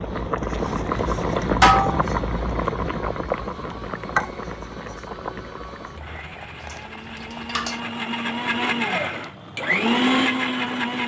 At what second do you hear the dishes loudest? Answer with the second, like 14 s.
2 s.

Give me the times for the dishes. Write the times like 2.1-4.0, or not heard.
1.6-2.0, 6.6-7.8.